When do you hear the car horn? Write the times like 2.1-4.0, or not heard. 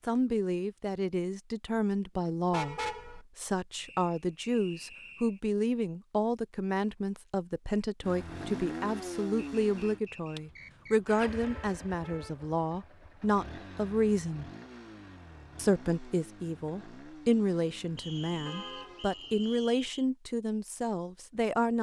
2.5-3.2, 11.4-12.3, 18.4-19.7.